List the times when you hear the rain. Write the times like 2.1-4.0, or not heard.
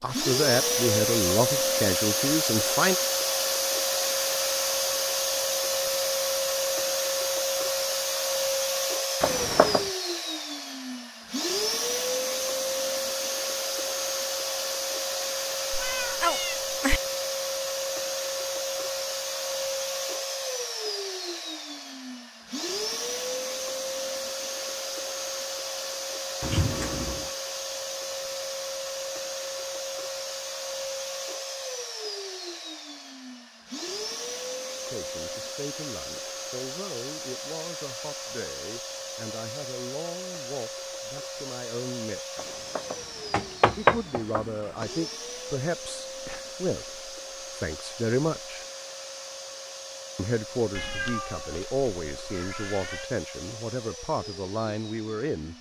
not heard.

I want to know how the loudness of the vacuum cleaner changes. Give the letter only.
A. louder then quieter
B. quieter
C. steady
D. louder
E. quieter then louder
B.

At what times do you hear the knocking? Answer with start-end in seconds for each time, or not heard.
9.2-9.9, 42.4-44.9.